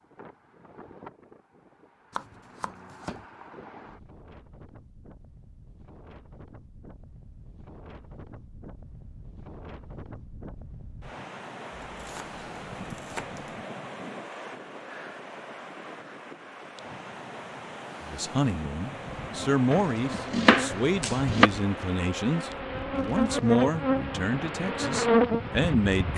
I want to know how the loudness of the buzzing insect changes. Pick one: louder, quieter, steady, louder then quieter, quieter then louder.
louder.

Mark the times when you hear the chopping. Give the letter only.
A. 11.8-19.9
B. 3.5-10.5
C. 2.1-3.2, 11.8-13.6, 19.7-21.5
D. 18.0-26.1
C.